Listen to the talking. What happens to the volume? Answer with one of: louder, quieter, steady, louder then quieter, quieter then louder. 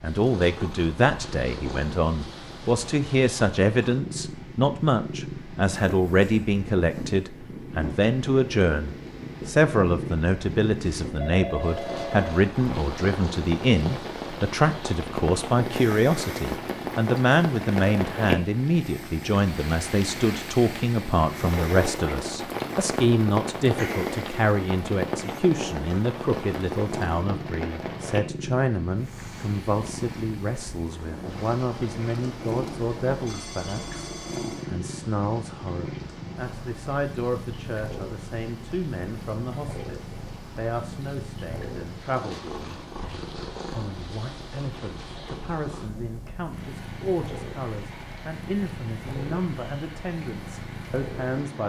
quieter.